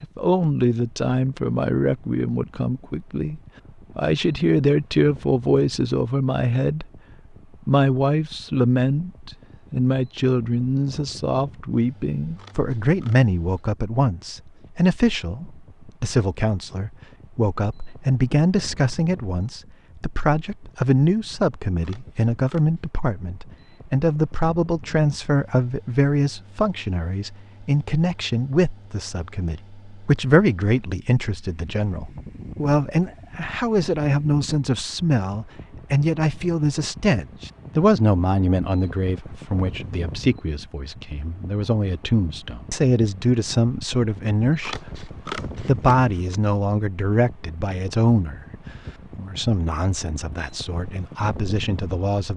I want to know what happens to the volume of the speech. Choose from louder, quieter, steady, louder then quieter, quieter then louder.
steady.